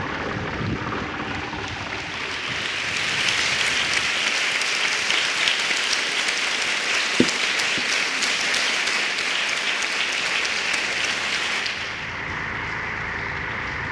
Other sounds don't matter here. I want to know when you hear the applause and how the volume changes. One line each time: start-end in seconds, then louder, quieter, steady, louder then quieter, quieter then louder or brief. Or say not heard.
0.0-13.8 louder then quieter.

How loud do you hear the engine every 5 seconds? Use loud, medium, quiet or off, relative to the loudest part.
loud, off, loud.